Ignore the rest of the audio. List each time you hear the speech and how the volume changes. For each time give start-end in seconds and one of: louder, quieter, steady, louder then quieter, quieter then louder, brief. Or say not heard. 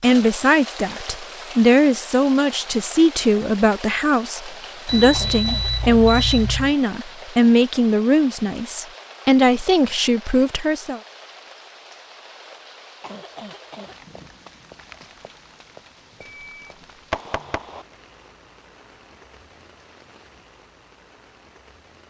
0.0-11.0 steady.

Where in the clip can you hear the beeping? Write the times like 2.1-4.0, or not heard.
4.8-6.8, 16.2-17.9.